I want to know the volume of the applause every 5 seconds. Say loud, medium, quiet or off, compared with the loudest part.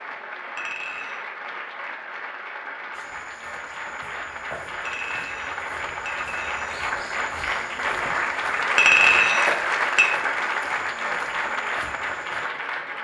medium, loud, loud.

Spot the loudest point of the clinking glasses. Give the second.
9 s.